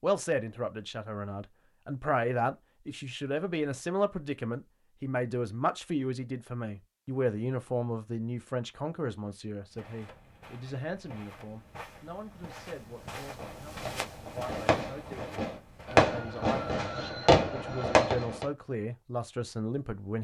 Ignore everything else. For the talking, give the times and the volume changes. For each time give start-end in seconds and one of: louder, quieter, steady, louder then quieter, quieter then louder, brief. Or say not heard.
0.0-20.1 quieter then louder.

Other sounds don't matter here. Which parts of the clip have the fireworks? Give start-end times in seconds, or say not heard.
13.2-18.4.